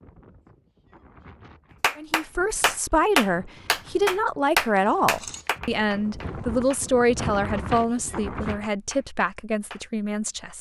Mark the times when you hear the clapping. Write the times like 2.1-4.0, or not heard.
1.8-7.8, 8.7-9.8.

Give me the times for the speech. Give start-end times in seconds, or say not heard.
1.9-10.5.